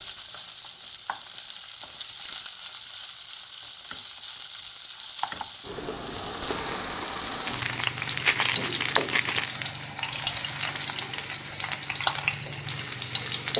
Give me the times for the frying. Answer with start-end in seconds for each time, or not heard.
0.0-13.5.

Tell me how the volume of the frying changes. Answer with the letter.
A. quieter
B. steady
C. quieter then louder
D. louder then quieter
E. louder
B.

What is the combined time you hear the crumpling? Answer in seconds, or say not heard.
2 s.